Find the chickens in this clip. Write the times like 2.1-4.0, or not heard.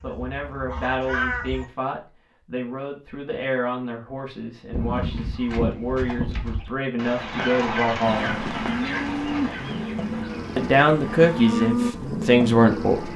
0.0-1.6, 4.7-11.7.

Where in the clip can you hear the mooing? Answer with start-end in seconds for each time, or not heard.
8.0-13.1.